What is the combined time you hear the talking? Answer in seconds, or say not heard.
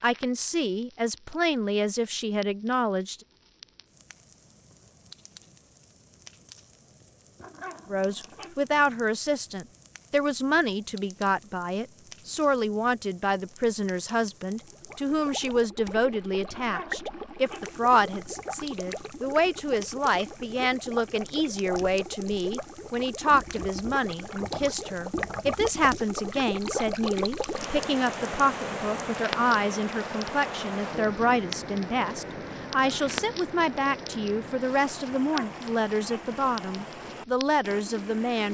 34 s.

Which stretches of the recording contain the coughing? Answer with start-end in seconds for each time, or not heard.
not heard.